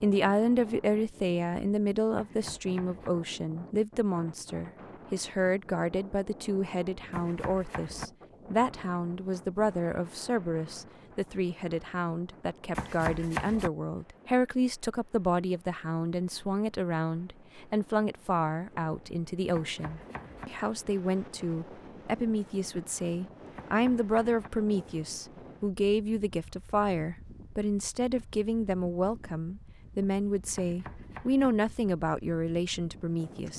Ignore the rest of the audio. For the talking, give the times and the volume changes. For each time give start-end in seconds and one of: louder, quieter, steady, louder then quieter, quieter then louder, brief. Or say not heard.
0.0-33.5 steady.